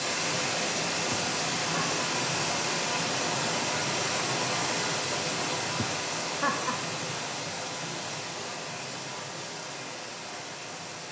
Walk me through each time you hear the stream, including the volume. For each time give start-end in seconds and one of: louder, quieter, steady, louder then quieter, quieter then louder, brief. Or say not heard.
0.0-11.0 quieter.